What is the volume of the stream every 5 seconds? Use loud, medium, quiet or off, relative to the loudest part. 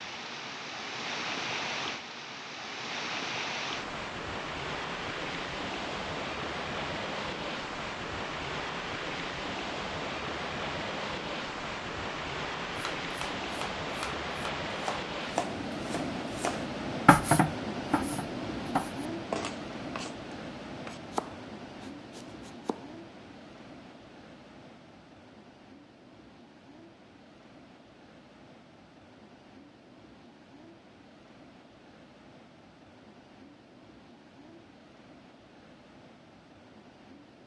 loud, loud, loud, loud, medium, quiet, quiet, quiet.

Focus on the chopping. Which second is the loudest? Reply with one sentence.
The loudest moment of the chopping is at 17 seconds.